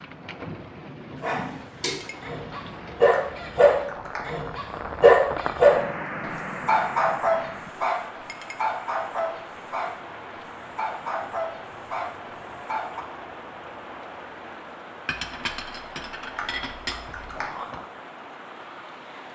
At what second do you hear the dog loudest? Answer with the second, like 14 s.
5 s.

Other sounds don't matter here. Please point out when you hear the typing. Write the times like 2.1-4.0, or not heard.
3.1-4.2, 16.2-17.5.